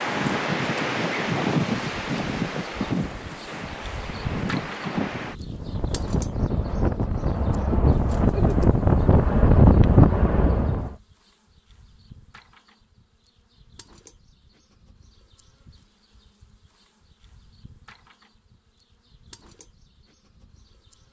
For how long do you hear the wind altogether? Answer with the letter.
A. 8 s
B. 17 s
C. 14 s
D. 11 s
D.